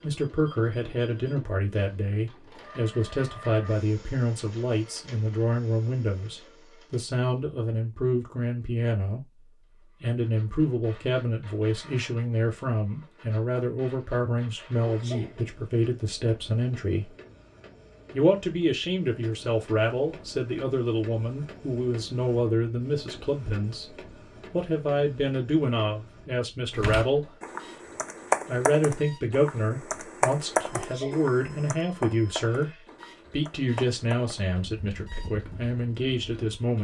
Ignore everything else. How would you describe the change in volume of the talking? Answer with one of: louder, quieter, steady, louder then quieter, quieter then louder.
steady.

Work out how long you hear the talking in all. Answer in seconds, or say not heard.
35 s.